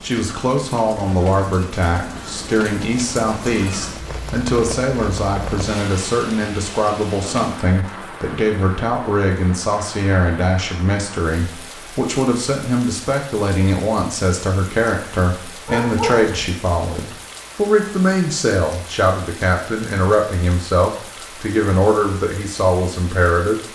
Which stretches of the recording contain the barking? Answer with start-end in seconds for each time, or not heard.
15.7-16.4.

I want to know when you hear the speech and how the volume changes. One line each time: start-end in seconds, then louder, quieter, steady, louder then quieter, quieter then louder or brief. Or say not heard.
0.0-23.6 steady.